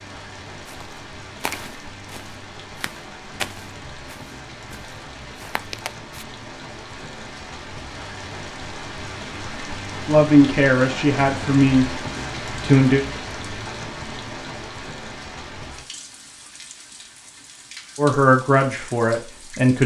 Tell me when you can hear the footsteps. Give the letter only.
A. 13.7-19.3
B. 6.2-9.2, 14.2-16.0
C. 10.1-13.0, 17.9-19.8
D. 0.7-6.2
D.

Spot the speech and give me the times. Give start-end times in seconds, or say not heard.
10.1-13.0, 17.9-19.8.